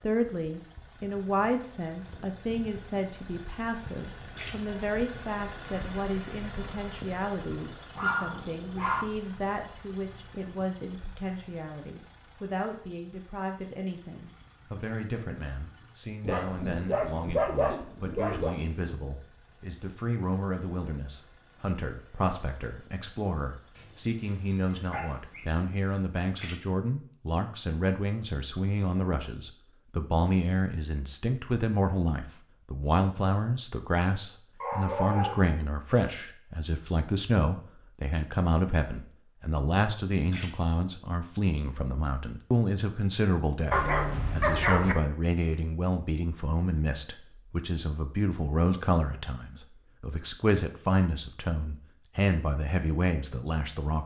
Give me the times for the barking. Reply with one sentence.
You can hear the barking from 8.0 to 9.1 s, from 16.2 to 18.6 s, from 23.8 to 25.5 s, from 34.6 to 36.0 s and from 43.7 to 45.0 s.